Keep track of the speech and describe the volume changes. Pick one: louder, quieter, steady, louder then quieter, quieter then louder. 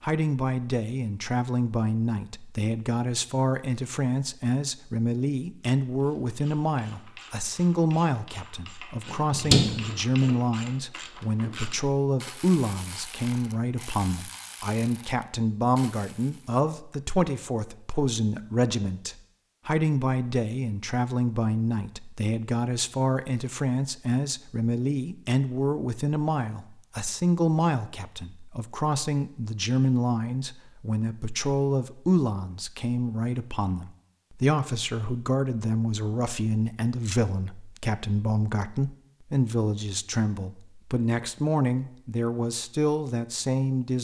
steady.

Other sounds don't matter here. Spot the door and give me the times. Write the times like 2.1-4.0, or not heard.
9.1-10.3.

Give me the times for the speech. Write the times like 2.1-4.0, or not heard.
0.0-43.9.